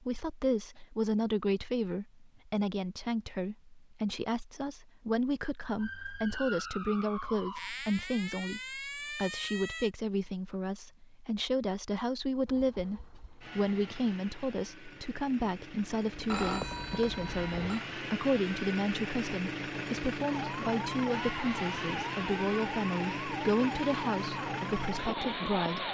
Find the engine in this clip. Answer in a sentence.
You can hear the engine from 12.4 to 25.8 s.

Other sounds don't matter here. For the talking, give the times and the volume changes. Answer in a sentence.
The talking can be heard from 0.0 to 25.8 s, at a steady volume.